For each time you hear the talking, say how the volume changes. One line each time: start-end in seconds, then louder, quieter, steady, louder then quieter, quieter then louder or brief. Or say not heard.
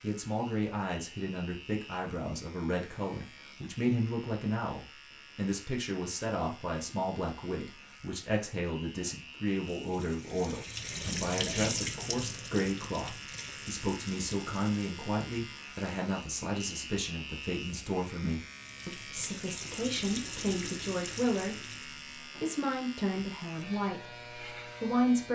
0.0-25.3 steady.